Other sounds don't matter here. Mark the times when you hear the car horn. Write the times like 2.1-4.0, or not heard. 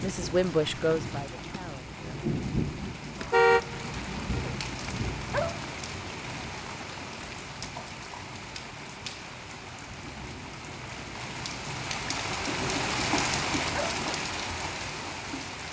3.2-4.5.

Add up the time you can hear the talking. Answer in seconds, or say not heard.
2 s.